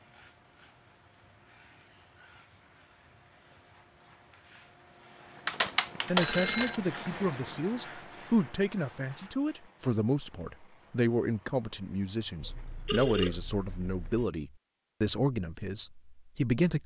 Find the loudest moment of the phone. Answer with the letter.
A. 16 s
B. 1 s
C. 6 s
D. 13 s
C.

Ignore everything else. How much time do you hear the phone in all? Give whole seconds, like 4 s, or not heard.
3 s.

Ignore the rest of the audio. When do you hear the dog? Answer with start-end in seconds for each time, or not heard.
not heard.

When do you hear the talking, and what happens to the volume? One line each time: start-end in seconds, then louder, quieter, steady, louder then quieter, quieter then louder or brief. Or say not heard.
6.0-16.8 steady.